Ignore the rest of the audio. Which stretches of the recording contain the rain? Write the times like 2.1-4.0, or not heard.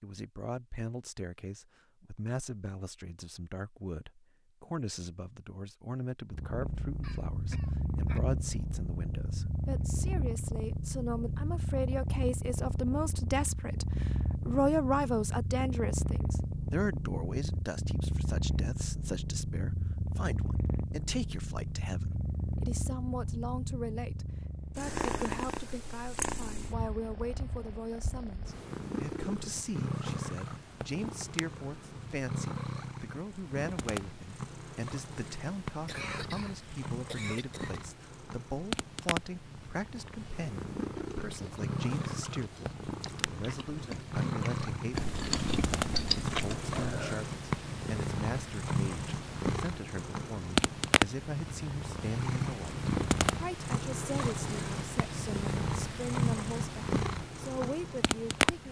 not heard.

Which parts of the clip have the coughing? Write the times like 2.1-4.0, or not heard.
7.0-8.3, 35.8-37.8.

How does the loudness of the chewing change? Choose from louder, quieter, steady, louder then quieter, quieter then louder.
louder.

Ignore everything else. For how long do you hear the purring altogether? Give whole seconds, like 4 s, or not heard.
52 s.